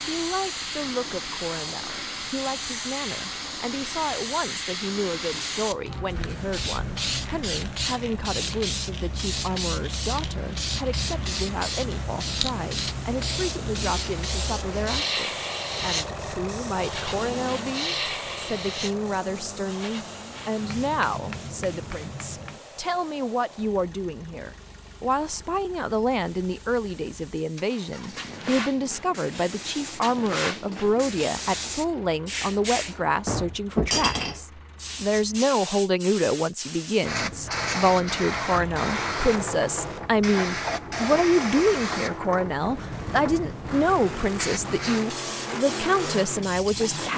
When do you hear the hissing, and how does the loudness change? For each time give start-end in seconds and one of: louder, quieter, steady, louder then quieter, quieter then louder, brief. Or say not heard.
0.0-47.1 quieter then louder.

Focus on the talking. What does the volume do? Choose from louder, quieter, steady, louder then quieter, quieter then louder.
louder.